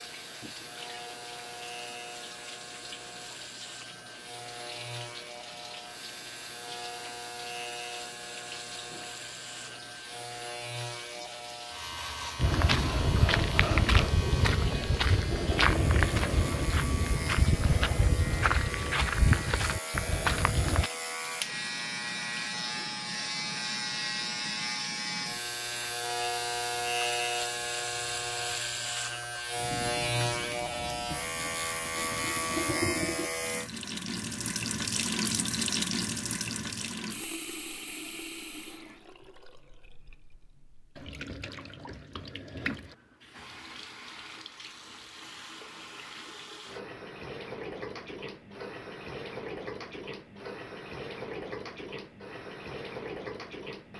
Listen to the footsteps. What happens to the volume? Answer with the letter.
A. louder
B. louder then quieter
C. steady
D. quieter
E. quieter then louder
C.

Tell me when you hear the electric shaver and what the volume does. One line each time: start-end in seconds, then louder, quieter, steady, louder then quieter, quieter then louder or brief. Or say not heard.
0.0-33.7 louder.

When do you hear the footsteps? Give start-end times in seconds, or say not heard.
12.3-20.9.